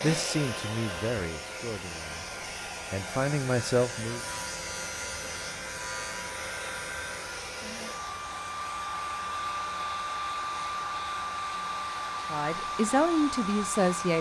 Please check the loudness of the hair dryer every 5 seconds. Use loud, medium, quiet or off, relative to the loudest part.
medium, loud, loud.